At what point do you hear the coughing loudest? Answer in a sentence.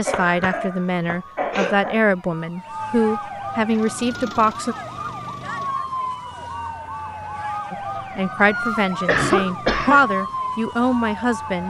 The volume of the coughing peaks at 9 seconds.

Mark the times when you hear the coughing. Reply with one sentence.
You can hear the coughing from 0.1 to 2.0 s and from 8.6 to 10.0 s.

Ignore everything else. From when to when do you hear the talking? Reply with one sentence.
The talking can be heard from 0.0 to 4.8 s and from 7.7 to 11.6 s.